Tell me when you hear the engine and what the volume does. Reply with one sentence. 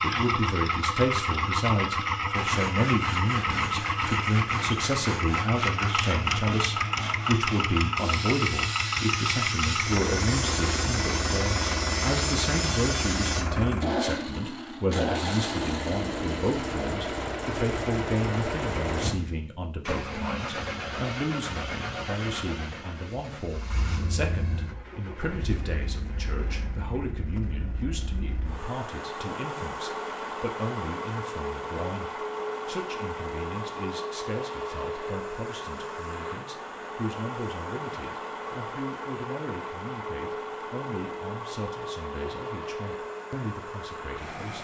You can hear the engine from 0.0 to 44.6 s, getting quieter.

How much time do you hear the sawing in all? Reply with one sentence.
You can hear the sawing for 11 seconds altogether.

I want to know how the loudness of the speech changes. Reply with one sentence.
The volume of the speech goes down.